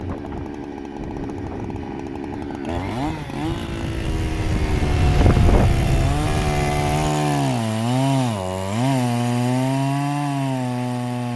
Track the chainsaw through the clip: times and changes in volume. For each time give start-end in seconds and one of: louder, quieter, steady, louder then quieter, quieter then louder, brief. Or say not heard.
0.0-11.3 louder.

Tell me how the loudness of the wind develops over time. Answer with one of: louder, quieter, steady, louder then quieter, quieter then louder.
louder.